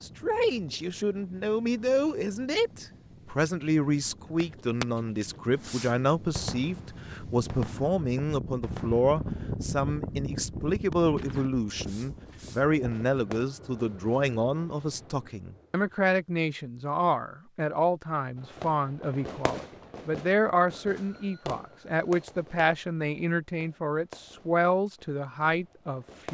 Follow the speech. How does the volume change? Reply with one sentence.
The loudness of the speech stays about the same.